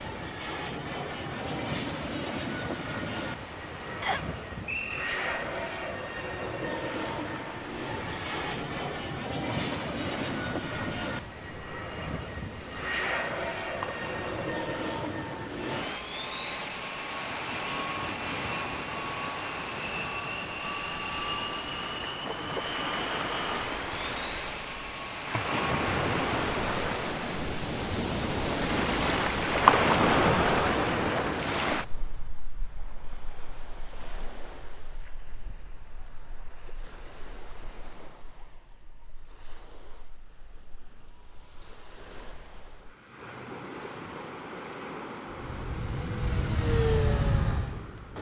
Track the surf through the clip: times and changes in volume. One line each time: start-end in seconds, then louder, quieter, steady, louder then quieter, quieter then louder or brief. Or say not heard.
0.0-48.1 louder then quieter.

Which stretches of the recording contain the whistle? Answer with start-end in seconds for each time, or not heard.
4.0-5.0.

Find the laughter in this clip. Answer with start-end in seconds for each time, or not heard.
not heard.